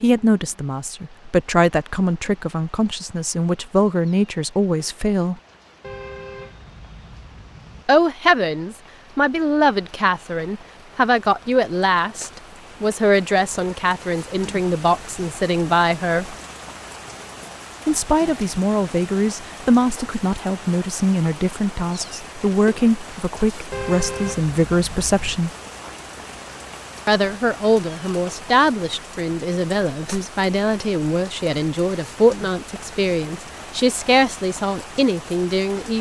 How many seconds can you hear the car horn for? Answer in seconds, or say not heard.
4 s.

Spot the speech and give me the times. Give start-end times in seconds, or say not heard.
0.0-5.3, 7.8-16.4, 17.9-25.5, 27.1-35.9.